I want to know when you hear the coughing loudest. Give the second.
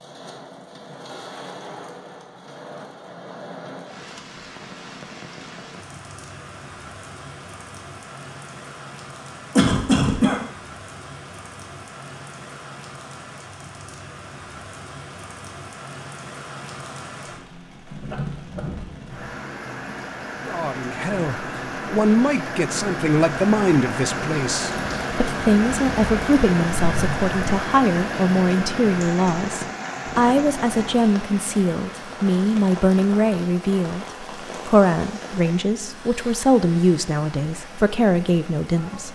10 s.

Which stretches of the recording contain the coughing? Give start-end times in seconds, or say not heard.
9.6-10.4, 18.1-18.6, 26.8-27.6.